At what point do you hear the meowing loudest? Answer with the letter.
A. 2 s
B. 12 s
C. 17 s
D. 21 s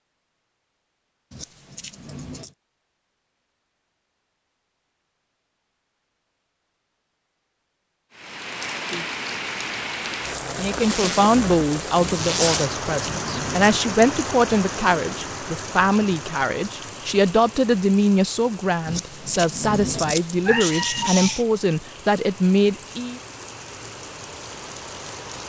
D.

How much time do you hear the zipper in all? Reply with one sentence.
You can hear the zipper for 2 seconds altogether.